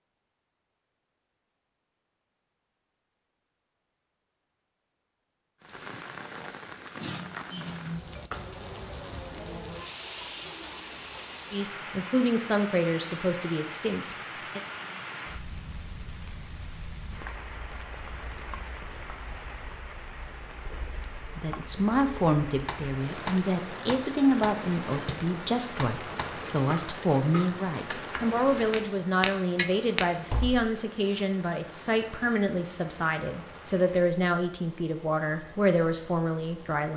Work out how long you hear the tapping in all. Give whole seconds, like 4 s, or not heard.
8 s.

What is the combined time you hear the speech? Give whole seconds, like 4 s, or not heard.
19 s.